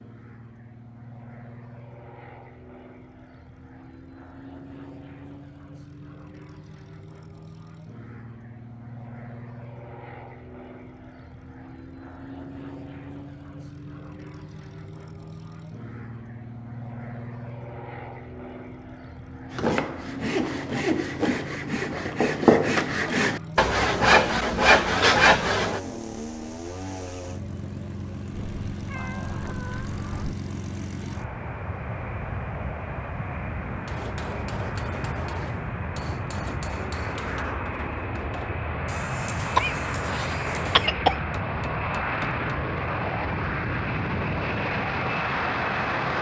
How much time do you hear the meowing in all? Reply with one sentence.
The meowing can be heard for 2 seconds in total.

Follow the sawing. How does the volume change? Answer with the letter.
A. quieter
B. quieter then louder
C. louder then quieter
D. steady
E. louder
E.